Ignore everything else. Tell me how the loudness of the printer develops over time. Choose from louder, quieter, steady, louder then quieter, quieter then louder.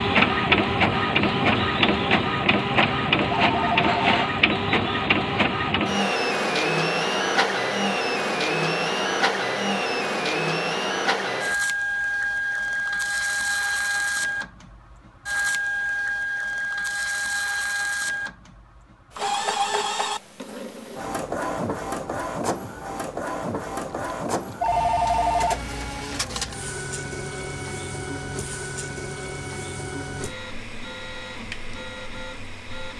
quieter.